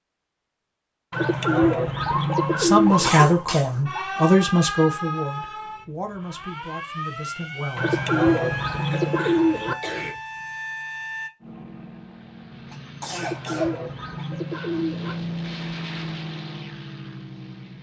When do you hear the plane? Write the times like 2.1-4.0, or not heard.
11.4-17.7.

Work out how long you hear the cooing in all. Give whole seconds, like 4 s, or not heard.
6 s.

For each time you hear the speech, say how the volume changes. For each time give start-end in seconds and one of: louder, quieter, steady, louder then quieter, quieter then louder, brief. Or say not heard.
2.5-8.0 quieter.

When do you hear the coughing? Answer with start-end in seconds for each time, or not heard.
3.0-3.8, 8.9-10.2, 12.7-14.2.